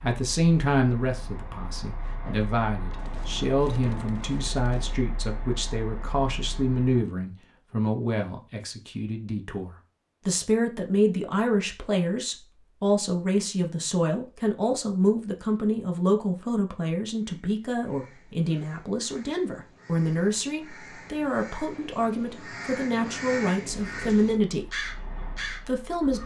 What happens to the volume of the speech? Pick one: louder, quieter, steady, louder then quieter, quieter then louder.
steady.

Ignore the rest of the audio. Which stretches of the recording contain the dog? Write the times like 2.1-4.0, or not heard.
not heard.